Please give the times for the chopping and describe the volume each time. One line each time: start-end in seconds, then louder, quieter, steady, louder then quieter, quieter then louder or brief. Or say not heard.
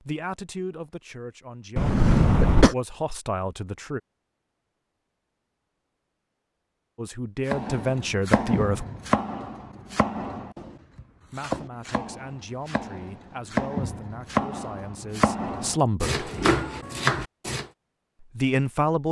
7.5-17.6 quieter then louder.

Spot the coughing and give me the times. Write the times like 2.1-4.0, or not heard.
1.8-2.8.